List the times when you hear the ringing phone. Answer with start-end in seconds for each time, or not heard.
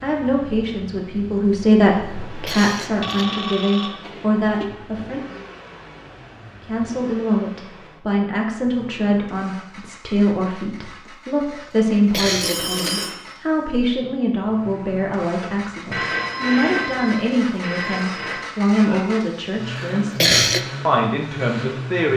2.8-4.7, 12.4-13.2, 15.9-18.5.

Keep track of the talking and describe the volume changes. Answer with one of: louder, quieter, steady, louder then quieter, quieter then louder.
steady.